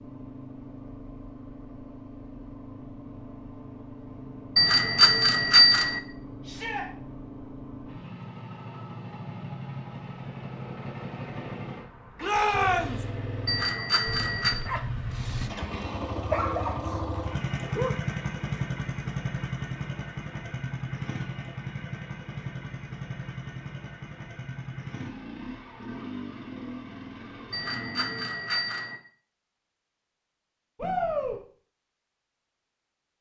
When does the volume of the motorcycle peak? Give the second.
18 s.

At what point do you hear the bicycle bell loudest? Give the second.
6 s.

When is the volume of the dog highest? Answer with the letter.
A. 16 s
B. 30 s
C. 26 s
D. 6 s
A.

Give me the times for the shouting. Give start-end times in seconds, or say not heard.
6.4-6.8, 12.2-13.0, 30.8-31.4.